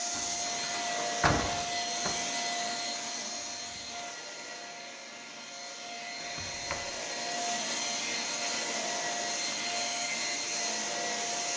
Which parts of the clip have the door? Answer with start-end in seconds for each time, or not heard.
0.1-2.1, 6.2-7.0.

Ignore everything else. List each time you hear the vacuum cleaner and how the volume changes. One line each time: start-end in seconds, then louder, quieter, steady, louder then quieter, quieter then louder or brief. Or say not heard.
0.0-11.5 quieter then louder.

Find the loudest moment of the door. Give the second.
1 s.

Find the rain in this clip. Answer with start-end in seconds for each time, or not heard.
not heard.